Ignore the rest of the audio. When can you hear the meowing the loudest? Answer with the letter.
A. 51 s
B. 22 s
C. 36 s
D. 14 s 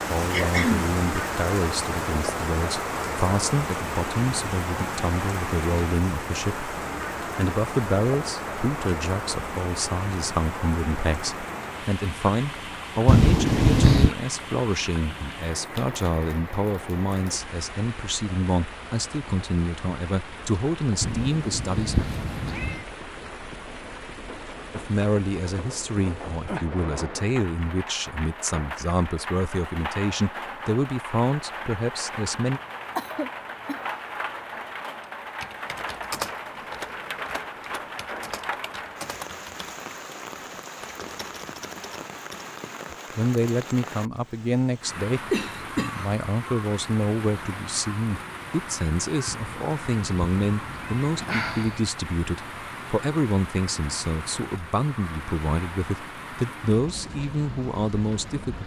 D.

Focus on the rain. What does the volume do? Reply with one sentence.
The volume of the rain goes down.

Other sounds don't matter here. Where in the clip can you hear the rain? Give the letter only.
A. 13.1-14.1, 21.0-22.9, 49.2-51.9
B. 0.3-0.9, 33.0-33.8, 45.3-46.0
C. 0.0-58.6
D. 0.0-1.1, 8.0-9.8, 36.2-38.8
C.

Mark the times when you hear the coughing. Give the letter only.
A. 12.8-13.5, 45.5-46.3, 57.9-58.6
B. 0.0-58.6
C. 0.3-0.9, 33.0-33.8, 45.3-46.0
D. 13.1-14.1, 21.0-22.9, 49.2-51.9
C.